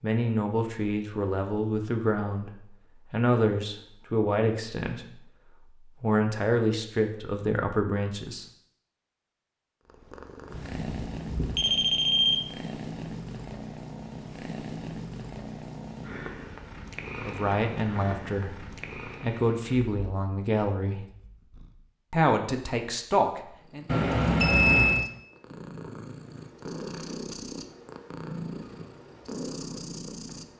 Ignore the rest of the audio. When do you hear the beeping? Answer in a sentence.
You can hear the beeping from 10.5 to 12.3 s and from 23.9 to 25.1 s.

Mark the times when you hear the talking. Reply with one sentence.
You can hear the talking from 0.0 to 8.4 s, from 17.2 to 21.1 s and from 22.1 to 23.9 s.